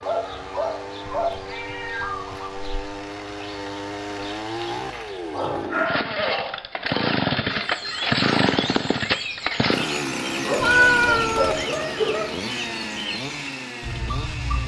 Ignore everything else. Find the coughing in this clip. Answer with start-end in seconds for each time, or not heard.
not heard.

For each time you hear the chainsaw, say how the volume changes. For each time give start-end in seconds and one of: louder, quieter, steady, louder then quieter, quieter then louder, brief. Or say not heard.
0.0-14.6 louder then quieter.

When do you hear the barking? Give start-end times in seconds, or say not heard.
0.0-1.3, 5.3-7.2, 10.4-12.3.